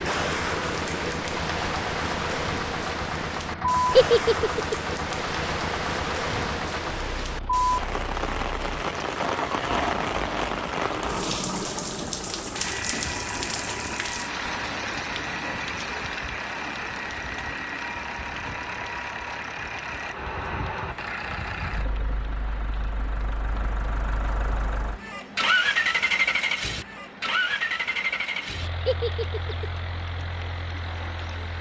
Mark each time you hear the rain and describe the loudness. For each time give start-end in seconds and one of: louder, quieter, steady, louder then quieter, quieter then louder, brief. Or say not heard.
0.0-31.5 quieter.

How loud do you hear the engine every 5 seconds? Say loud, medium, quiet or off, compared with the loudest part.
medium, medium, medium, medium, medium, loud, quiet.